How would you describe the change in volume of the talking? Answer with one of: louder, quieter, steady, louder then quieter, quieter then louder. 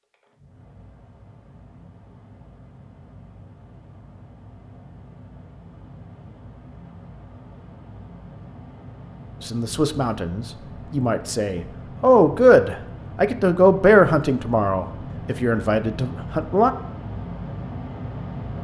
louder then quieter.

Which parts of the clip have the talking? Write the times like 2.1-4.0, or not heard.
9.4-16.7.